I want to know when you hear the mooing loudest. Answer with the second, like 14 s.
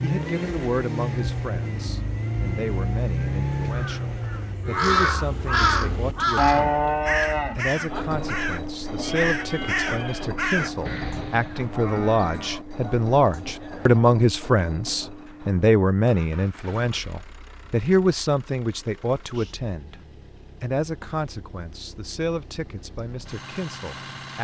7 s.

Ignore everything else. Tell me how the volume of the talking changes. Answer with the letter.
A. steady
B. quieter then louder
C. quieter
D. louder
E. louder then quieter
E.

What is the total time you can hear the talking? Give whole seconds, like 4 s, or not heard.
23 s.